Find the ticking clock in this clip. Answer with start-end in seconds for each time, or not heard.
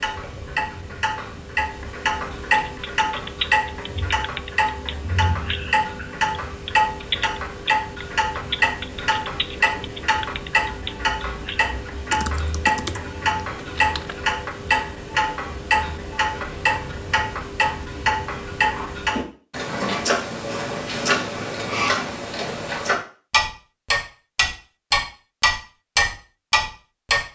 0.0-27.2.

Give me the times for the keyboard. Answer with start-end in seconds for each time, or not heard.
2.6-14.2.